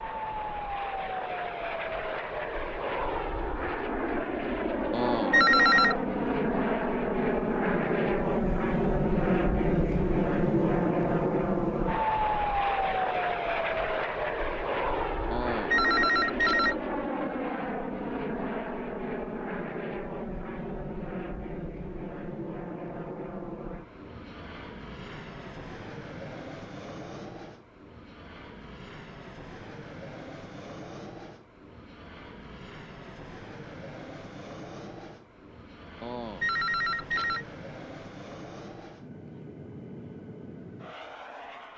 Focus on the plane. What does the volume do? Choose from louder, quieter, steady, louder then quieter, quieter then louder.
quieter.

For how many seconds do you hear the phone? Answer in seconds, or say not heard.
4 s.